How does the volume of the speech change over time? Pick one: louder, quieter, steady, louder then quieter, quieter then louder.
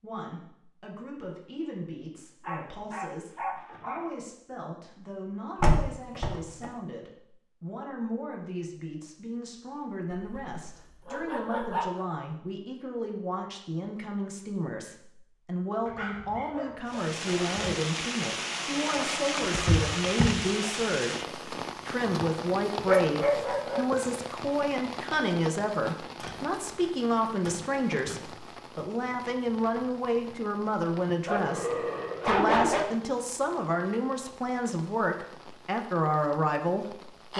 louder.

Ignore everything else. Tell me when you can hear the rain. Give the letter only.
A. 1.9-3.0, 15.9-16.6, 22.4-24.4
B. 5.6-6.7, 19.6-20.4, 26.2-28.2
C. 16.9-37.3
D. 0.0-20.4
C.